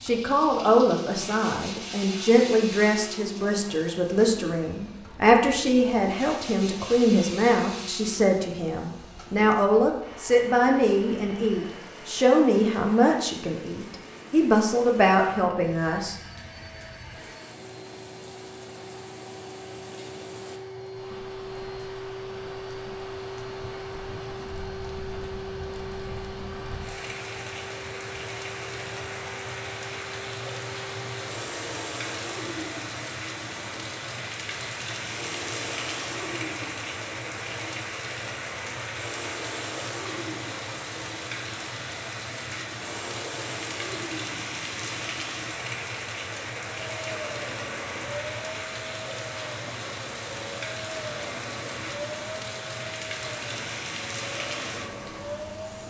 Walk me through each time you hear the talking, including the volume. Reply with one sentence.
You can hear the talking from 0.0 to 16.1 s, at a steady volume.